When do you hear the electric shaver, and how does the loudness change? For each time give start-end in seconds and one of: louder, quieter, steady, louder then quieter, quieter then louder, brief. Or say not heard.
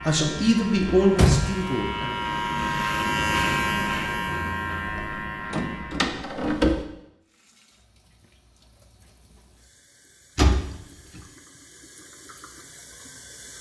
0.0-6.2 louder then quieter.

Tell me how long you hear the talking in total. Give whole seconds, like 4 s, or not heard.
2 s.